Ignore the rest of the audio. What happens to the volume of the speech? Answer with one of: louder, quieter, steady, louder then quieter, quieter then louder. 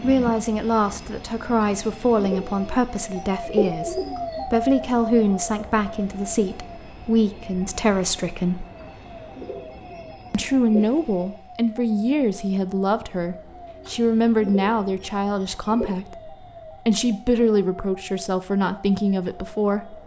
steady.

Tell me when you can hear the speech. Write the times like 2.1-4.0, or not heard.
0.0-8.7, 10.3-20.0.